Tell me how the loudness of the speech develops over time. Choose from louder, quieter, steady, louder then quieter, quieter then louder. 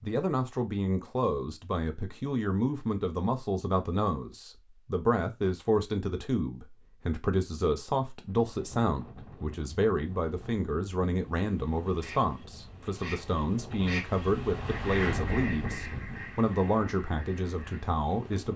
steady.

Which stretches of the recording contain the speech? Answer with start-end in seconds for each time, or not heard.
0.0-18.5.